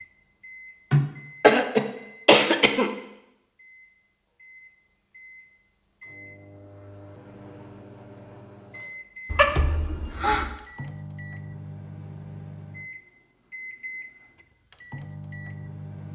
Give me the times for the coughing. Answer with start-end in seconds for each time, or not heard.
0.9-2.9, 9.3-10.5.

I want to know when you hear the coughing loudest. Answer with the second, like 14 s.
2 s.